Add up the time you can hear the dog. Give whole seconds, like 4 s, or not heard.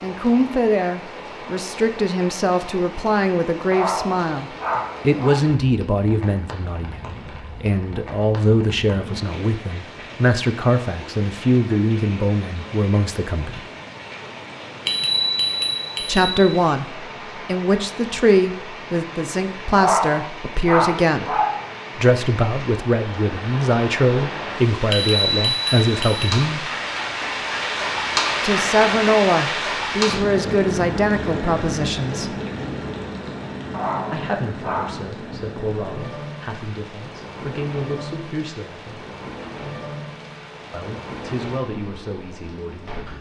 5 s.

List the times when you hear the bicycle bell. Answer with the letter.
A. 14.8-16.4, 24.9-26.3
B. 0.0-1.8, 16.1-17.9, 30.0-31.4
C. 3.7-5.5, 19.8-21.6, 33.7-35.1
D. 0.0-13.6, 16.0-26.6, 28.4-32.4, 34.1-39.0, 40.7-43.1
A.